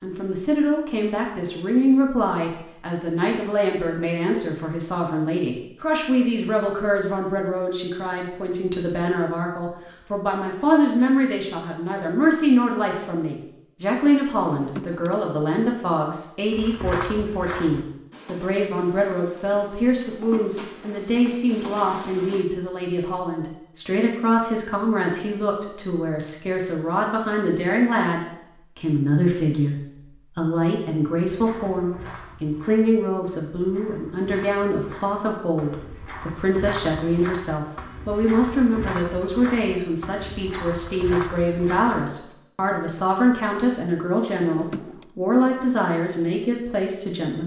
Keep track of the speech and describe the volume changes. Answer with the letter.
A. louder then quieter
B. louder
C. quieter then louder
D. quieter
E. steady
E.